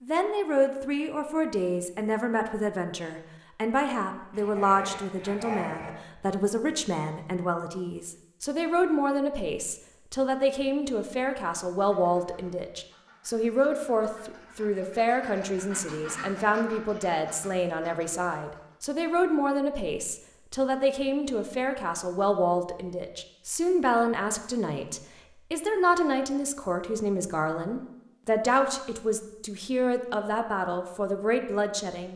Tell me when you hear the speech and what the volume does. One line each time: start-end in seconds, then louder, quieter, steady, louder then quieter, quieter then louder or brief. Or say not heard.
0.0-32.1 steady.